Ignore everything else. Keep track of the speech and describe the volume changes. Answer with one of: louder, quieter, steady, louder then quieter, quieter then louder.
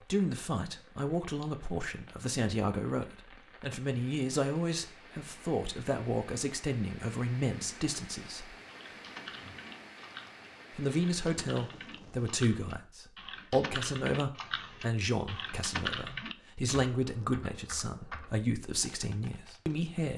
steady.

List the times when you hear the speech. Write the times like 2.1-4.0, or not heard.
0.1-8.6, 10.7-20.1.